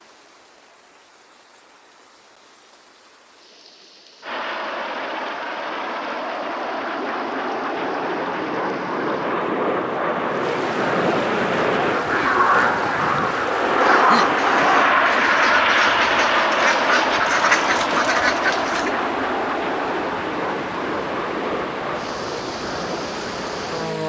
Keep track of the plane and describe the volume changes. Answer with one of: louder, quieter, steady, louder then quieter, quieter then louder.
louder then quieter.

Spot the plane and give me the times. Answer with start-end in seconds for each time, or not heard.
4.2-24.0.